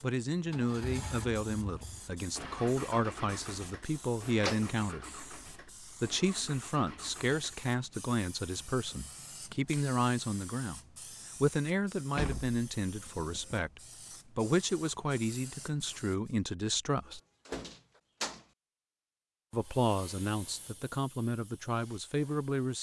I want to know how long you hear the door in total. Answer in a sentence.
The door can be heard for 3 seconds in total.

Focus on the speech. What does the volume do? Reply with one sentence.
The loudness of the speech stays about the same.